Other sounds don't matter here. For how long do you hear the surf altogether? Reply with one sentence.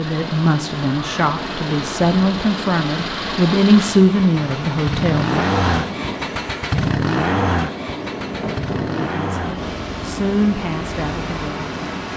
You can hear the surf for 12 seconds altogether.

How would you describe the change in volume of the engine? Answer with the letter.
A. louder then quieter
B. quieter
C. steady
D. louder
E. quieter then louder
A.